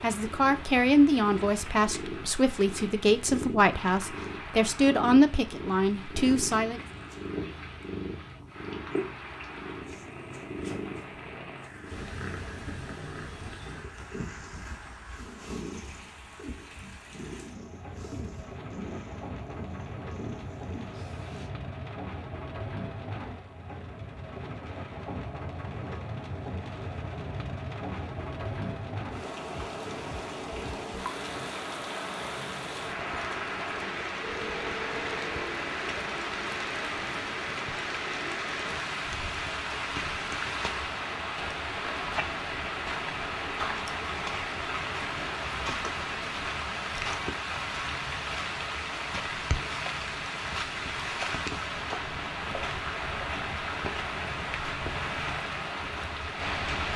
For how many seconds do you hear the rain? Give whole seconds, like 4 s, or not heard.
57 s.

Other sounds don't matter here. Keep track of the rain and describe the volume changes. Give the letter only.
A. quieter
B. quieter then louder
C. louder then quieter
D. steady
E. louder
E.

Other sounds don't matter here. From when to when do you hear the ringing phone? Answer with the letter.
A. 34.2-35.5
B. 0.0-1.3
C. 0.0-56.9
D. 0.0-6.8
A.